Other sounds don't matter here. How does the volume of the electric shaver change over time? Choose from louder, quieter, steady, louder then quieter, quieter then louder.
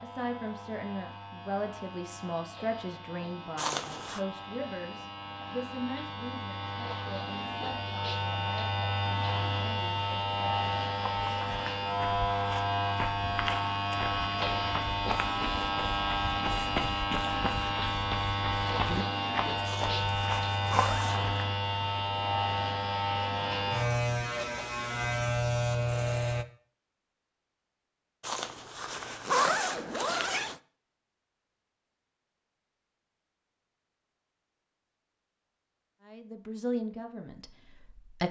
louder.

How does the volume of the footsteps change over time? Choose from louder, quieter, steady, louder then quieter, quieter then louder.
steady.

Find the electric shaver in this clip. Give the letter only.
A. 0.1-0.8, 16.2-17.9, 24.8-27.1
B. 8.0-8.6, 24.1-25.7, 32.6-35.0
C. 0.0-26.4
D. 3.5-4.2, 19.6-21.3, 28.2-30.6
C.